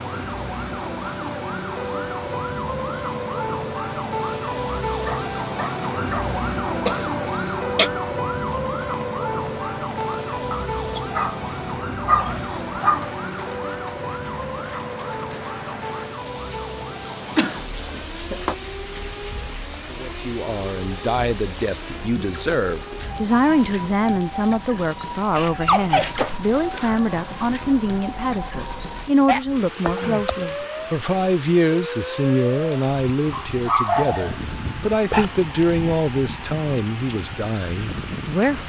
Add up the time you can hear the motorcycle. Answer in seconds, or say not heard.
not heard.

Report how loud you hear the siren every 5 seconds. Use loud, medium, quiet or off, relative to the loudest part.
loud, loud, loud, medium, medium, medium, medium, medium.